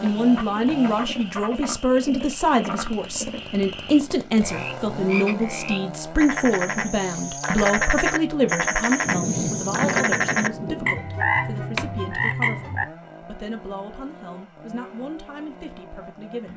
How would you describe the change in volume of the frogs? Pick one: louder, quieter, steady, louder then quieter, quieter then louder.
louder.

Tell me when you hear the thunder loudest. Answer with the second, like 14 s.
9 s.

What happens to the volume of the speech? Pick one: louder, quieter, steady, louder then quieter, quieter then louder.
quieter.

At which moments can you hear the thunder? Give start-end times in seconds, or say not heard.
9.0-10.9.